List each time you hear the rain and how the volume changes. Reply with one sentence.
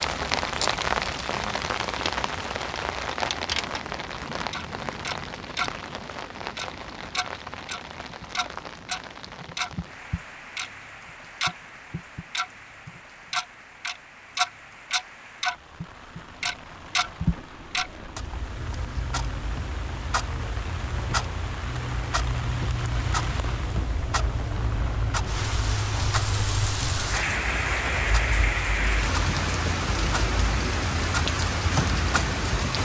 The rain can be heard from 0.0 to 32.8 s, getting quieter then louder.